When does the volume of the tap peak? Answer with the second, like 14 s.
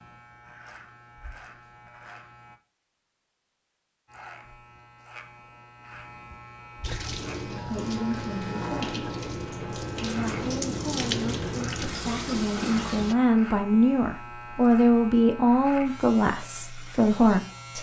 11 s.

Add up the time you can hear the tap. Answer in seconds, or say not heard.
6 s.